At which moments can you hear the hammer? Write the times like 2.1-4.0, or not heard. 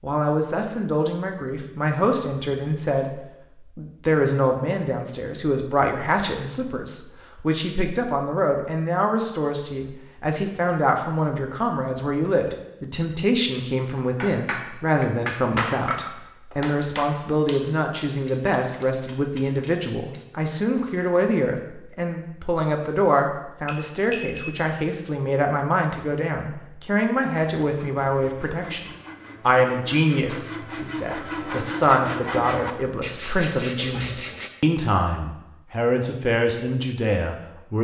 14.2-20.2.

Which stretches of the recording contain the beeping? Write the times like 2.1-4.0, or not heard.
23.6-24.6.